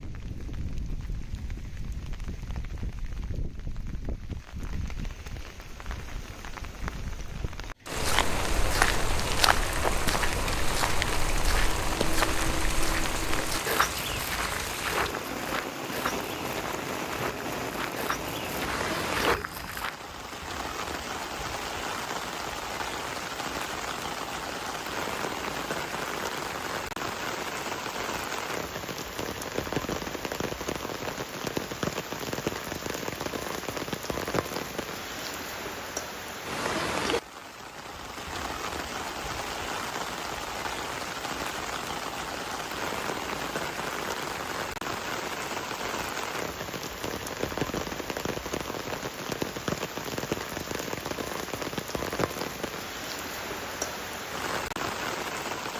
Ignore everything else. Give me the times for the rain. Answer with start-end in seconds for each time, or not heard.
0.0-55.7.